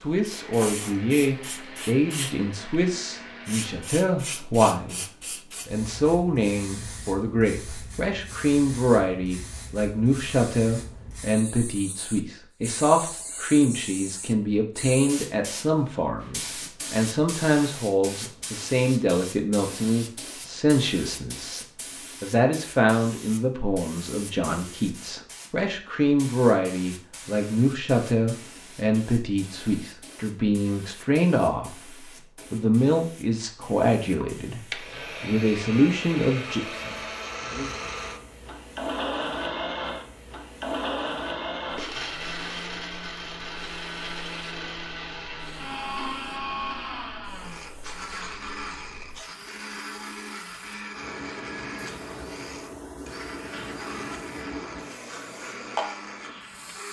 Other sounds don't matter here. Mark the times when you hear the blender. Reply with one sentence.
The blender can be heard from 0.2 to 4.0 s and from 34.2 to 56.8 s.